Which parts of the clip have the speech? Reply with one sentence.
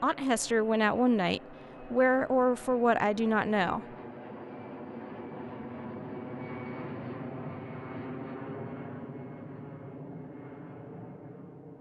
You can hear the speech from 0.0 to 3.9 s.